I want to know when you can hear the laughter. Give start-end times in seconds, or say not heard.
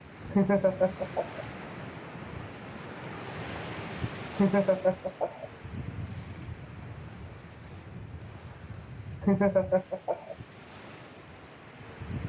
0.3-1.4, 4.3-5.5, 9.2-10.3.